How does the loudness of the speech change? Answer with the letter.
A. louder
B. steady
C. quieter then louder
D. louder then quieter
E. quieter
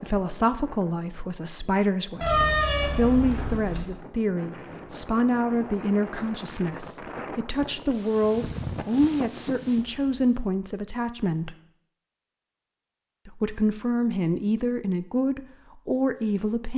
B.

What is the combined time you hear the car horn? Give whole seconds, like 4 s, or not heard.
2 s.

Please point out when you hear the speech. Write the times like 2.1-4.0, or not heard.
0.0-11.6, 13.2-16.7.